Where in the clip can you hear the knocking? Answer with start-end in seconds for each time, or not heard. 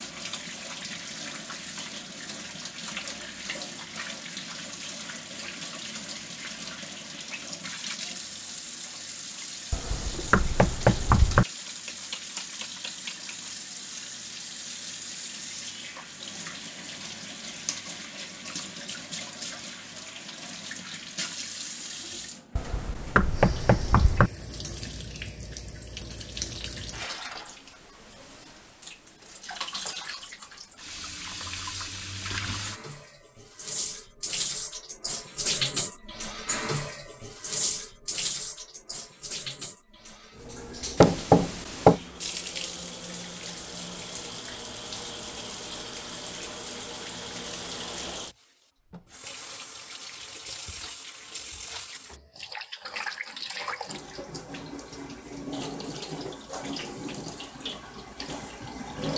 9.7-11.4, 22.6-24.3, 41.0-42.0.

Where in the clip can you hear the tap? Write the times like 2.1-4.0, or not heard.
0.0-59.1.